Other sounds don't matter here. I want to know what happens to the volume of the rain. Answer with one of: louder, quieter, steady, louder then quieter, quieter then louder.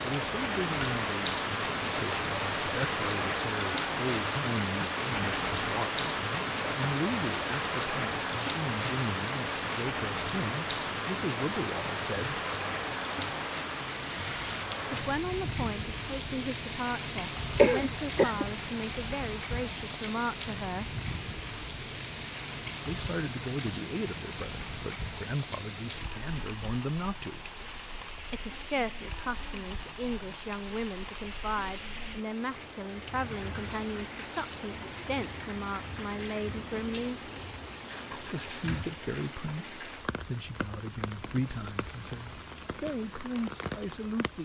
quieter.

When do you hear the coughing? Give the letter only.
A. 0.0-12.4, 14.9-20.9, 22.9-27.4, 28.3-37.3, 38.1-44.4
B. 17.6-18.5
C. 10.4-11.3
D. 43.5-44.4
B.